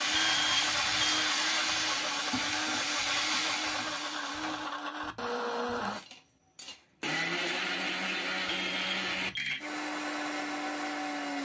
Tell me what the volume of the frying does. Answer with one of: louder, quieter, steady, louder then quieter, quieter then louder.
quieter.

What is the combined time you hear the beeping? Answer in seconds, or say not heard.
2 s.